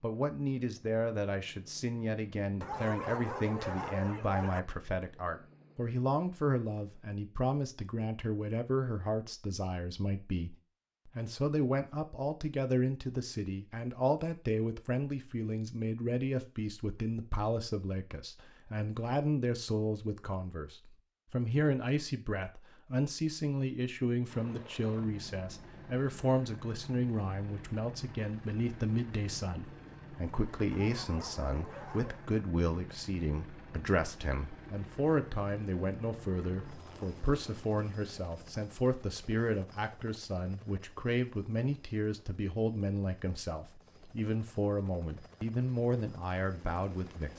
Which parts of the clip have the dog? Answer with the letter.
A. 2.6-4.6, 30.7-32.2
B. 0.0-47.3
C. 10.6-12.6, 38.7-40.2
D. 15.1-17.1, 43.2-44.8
A.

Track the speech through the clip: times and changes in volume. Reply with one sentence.
You can hear the speech from 0.0 to 47.3 s, at a steady volume.